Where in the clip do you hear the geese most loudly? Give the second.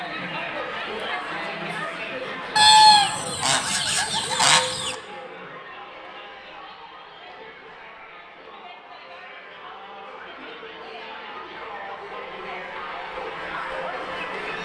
3 s.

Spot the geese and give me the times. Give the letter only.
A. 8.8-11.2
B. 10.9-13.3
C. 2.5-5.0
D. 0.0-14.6
C.